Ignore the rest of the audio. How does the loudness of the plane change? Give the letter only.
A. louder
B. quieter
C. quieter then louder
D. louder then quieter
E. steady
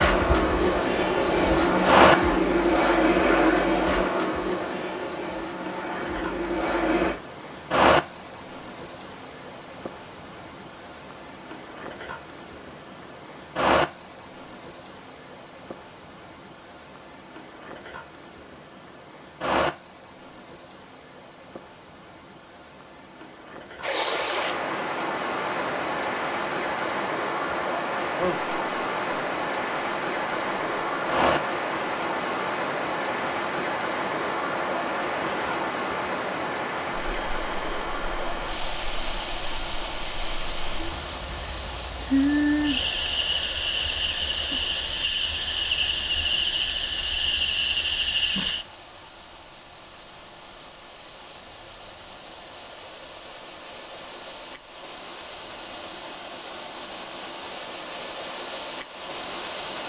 B.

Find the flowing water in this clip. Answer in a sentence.
You can hear the flowing water from 23.8 to 59.8 s.